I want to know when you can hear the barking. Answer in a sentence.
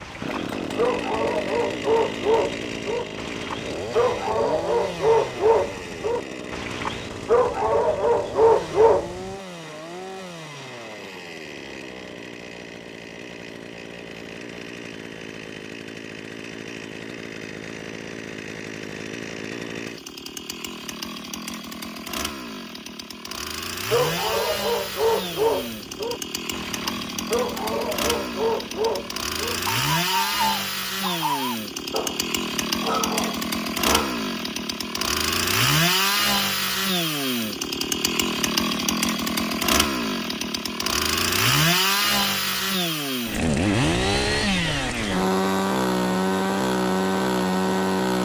You can hear the barking from 0.0 to 9.3 s and from 23.9 to 34.2 s.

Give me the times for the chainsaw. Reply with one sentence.
The chainsaw can be heard from 0.0 to 48.1 s.